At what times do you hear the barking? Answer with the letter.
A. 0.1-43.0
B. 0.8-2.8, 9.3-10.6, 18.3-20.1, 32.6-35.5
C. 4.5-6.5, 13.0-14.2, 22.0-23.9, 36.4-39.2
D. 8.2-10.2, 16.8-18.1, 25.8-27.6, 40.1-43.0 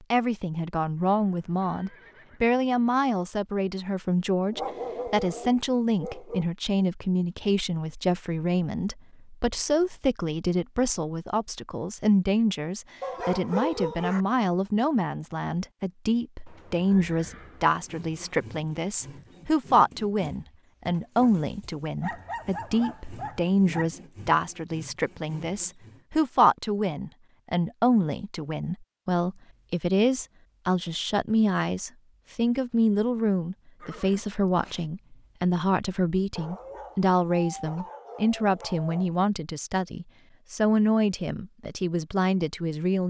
C.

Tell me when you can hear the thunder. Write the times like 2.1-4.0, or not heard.
not heard.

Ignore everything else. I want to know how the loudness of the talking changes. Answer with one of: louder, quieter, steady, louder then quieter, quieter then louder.
steady.